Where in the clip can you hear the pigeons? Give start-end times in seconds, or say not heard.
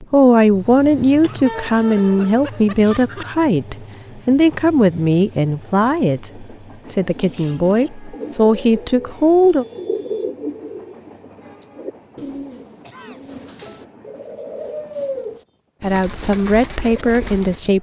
7.0-17.6.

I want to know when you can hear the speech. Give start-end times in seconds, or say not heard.
0.0-9.7, 15.8-17.7.